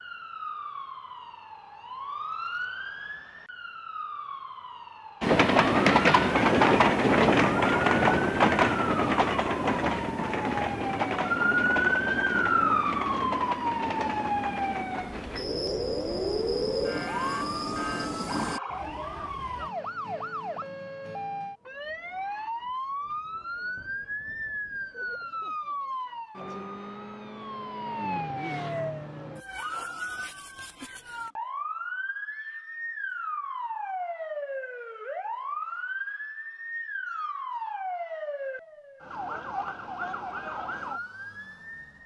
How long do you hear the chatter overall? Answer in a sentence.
You can't hear the chatter here.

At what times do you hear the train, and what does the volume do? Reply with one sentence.
The train can be heard from 5.2 to 18.6 s, getting quieter.